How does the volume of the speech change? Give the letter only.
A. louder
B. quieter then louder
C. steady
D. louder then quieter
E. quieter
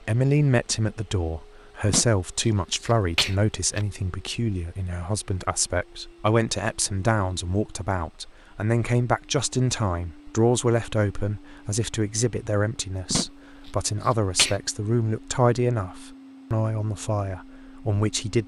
C.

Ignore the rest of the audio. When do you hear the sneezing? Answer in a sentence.
The sneezing can be heard from 1.9 to 3.9 s and from 13.1 to 14.6 s.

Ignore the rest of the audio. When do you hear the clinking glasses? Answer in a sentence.
The clinking glasses can't be heard in this clip.